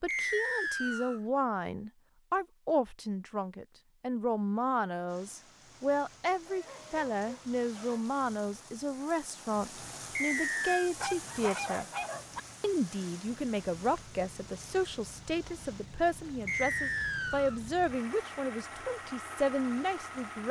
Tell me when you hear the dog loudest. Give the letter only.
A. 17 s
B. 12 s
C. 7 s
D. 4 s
B.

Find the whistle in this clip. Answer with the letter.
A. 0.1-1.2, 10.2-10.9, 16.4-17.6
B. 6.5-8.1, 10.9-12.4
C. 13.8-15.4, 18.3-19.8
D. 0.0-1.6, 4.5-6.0
A.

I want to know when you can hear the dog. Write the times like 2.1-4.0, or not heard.
6.5-8.1, 10.9-12.4.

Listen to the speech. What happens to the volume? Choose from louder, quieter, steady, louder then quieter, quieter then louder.
steady.